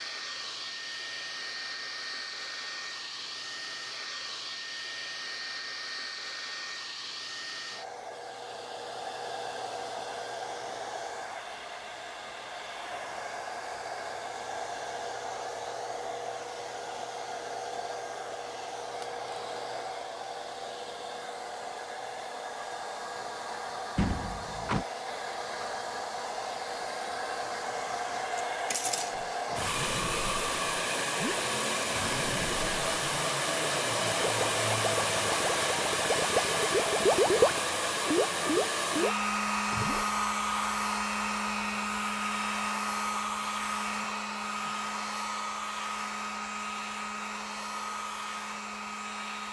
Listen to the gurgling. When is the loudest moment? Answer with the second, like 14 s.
37 s.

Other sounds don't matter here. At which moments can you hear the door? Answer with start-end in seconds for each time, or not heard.
23.9-24.9.